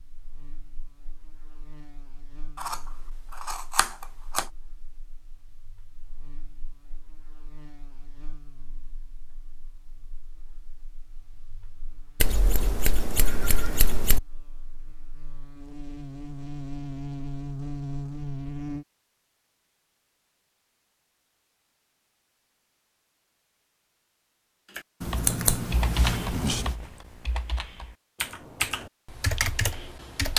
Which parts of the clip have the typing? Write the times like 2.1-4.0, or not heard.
24.8-30.3.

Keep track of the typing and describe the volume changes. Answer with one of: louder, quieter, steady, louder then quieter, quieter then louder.
quieter then louder.